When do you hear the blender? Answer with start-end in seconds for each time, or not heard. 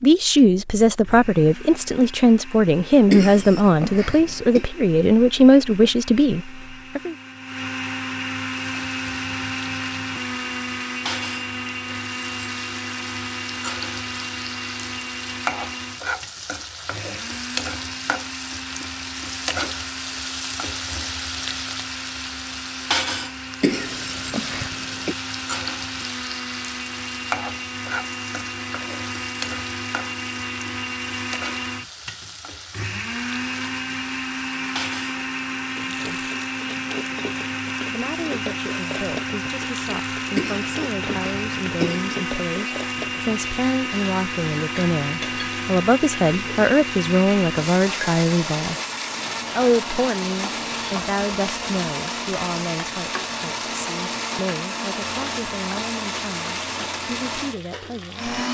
0.0-58.4.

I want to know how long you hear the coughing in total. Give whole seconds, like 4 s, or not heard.
5 s.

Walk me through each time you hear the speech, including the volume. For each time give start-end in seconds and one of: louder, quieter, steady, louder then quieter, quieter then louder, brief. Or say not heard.
0.0-7.2 steady
35.8-36.2 brief
37.9-48.8 louder
49.5-58.4 quieter.